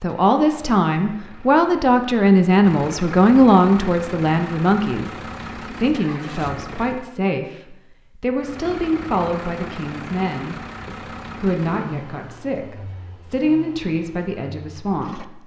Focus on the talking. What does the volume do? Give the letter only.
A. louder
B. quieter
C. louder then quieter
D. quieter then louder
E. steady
B.